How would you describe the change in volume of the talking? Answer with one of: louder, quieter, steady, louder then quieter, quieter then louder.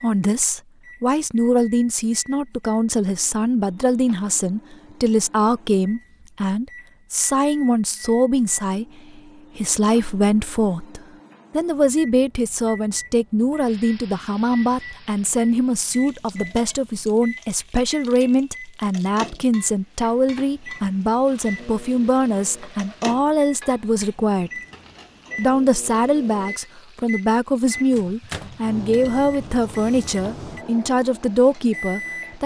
steady.